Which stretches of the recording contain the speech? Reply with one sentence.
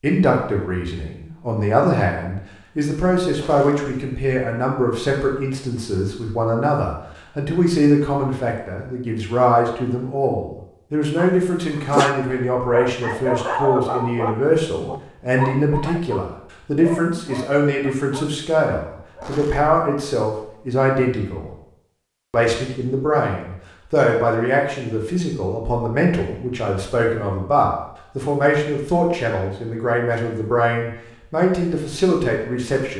You can hear the speech from 0.0 to 21.5 s and from 22.3 to 32.9 s.